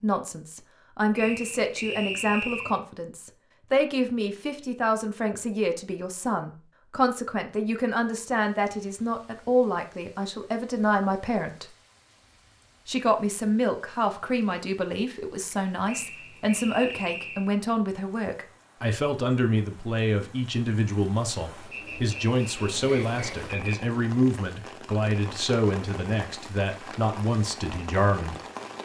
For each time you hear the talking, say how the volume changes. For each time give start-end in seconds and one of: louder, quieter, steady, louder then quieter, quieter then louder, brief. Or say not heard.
0.0-11.7 steady
12.8-28.4 steady.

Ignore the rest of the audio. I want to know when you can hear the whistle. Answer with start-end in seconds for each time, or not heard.
1.1-2.8, 15.8-17.5, 21.7-23.8.